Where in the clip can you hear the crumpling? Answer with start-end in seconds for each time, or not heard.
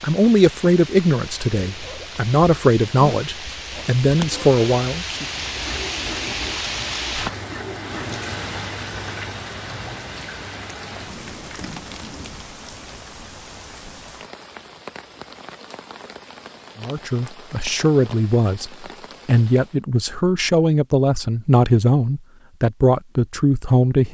11.2-12.2.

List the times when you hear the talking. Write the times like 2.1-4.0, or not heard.
0.0-5.2, 16.8-24.1.